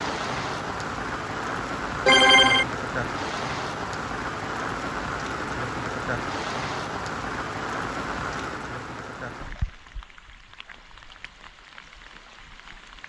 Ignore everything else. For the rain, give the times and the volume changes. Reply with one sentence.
You can hear the rain from 0.0 to 13.0 s, getting quieter.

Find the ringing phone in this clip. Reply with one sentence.
The ringing phone can be heard from 2.0 to 2.6 s.